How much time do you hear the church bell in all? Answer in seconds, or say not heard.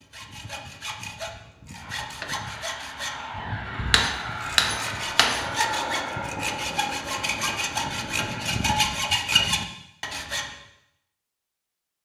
not heard.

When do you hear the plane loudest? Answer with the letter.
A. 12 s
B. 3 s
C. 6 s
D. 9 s
C.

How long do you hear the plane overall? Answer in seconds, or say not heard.
7 s.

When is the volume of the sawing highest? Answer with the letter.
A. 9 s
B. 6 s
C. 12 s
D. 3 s
A.